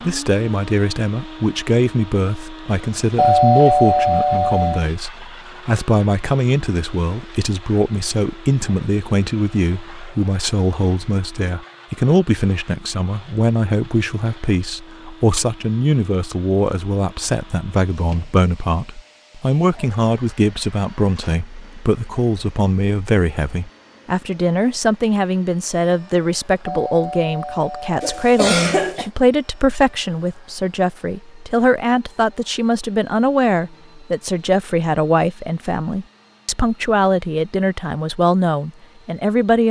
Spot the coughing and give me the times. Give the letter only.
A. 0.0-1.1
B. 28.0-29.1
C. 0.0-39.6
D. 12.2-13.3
B.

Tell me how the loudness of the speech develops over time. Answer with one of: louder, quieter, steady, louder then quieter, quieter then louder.
steady.